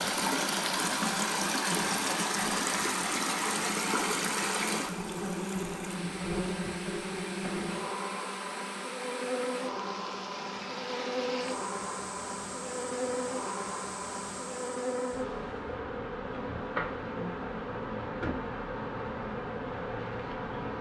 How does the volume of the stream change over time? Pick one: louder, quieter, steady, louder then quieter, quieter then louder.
quieter.